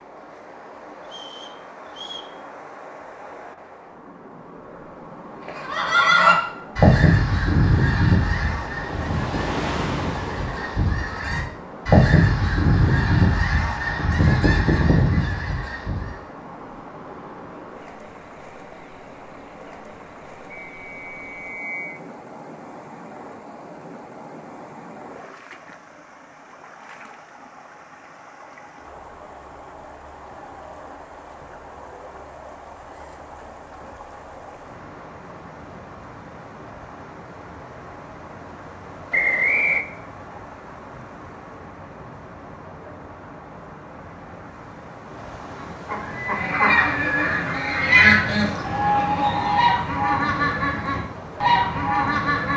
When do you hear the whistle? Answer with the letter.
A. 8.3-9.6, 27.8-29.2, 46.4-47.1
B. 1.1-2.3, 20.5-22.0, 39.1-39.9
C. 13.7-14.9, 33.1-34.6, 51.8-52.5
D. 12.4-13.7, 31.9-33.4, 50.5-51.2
B.